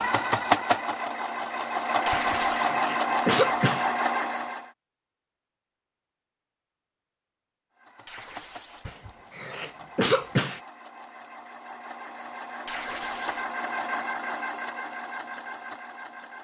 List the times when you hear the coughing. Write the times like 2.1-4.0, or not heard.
2.1-3.9, 8.8-10.6.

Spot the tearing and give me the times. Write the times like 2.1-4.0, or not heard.
2.0-2.8, 8.1-8.9, 12.7-13.5.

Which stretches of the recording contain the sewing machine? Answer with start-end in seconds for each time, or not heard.
0.0-4.7, 7.8-16.3.